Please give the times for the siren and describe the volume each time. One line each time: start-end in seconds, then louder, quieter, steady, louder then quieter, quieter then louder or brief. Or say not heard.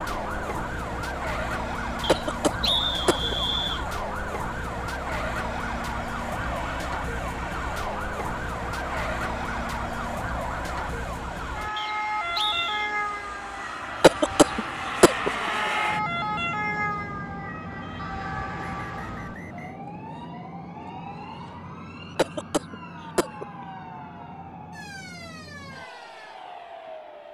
0.0-27.2 quieter.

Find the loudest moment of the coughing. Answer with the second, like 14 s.
14 s.